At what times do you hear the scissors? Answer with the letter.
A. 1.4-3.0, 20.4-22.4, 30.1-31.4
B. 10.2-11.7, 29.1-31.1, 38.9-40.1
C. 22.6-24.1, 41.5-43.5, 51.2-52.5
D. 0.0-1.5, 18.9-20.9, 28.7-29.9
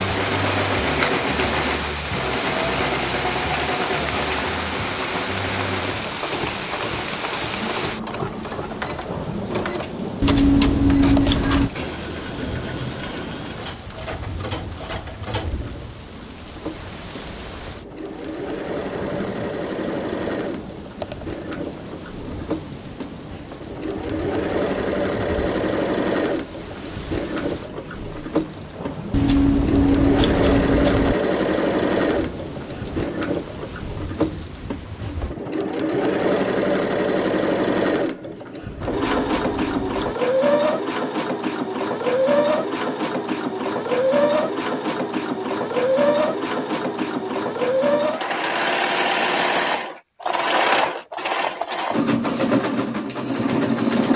B.